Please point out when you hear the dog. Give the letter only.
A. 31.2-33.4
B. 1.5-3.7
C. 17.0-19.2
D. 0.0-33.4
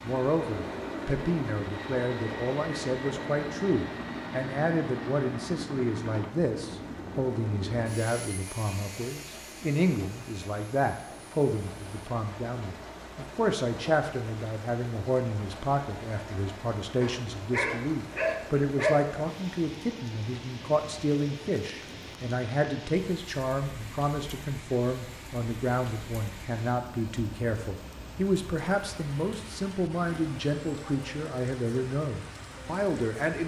C.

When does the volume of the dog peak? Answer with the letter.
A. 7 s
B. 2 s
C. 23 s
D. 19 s
D.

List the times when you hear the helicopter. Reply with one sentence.
The helicopter can be heard from 0.0 to 12.1 s.